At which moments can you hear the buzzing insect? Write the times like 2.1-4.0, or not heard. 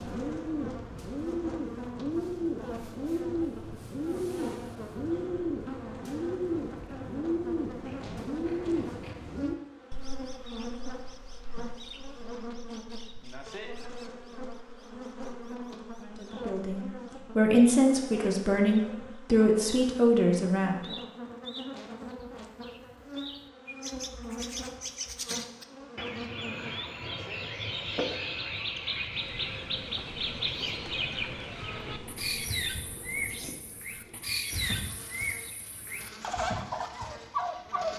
0.0-37.9.